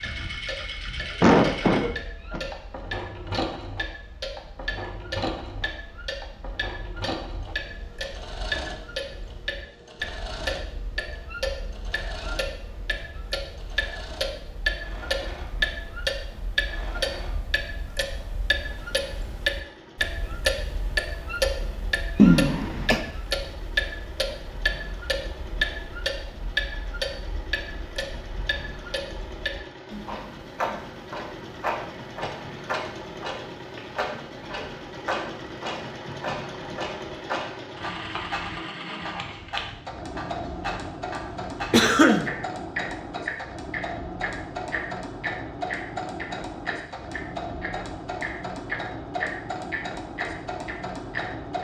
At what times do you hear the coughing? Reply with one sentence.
The coughing can be heard from 1.2 to 2.4 s, from 22.1 to 23.0 s and from 41.7 to 42.2 s.